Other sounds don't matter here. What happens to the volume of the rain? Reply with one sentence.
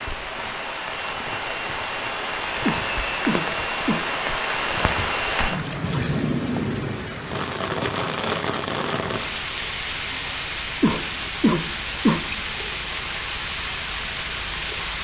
The volume of the rain stays about the same.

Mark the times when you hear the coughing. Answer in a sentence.
You can hear the coughing from 2.6 to 4.0 s and from 10.8 to 12.2 s.